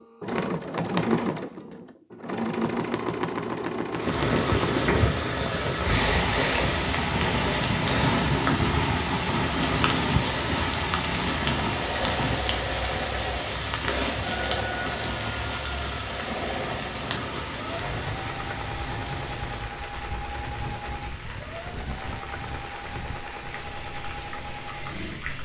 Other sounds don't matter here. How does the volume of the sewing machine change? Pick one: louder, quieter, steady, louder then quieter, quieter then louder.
quieter.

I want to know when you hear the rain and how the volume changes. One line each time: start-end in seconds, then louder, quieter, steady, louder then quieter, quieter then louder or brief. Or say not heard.
3.9-25.4 quieter.